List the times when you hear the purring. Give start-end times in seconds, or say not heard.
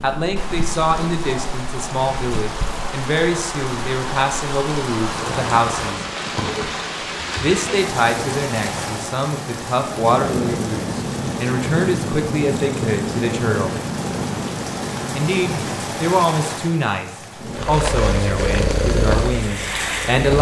0.0-6.3, 9.8-16.1, 17.4-20.3.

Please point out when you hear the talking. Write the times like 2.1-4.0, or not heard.
0.0-6.0, 7.4-13.8, 15.1-20.3.